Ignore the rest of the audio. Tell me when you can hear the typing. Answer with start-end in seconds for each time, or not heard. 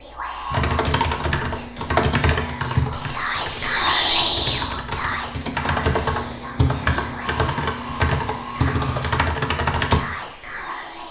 0.5-10.0.